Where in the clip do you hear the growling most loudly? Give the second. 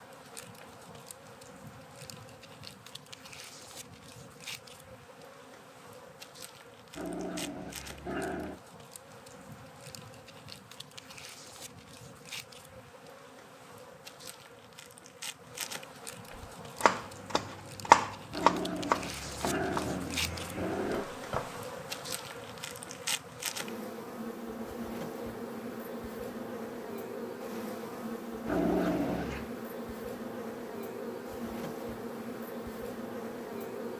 29 s.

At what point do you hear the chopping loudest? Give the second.
18 s.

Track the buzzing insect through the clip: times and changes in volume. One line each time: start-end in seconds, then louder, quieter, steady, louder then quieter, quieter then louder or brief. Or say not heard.
0.0-33.9 louder.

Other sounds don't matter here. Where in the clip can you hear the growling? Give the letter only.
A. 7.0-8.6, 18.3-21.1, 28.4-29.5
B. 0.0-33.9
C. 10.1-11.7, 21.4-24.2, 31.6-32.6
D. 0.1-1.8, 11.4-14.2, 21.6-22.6
A.